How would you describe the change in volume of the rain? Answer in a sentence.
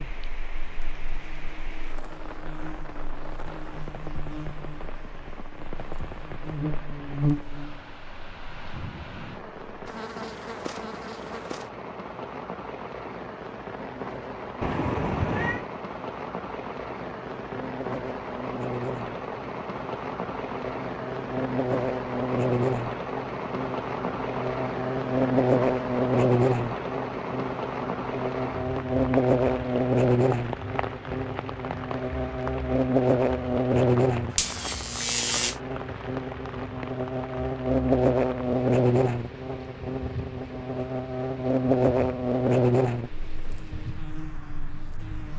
The loudness of the rain goes up, then down.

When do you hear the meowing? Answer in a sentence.
The meowing can be heard from 14.6 to 15.7 s.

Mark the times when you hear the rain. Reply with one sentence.
You can hear the rain from 0.0 to 45.3 s.